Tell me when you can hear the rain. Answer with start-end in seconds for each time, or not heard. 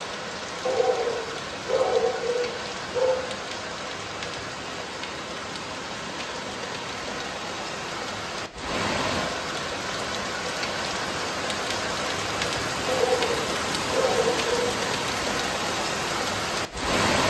0.0-17.2.